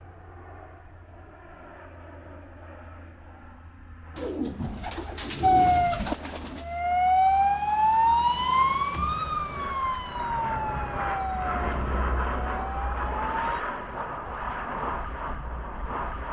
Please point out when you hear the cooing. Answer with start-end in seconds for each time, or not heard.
4.2-6.7.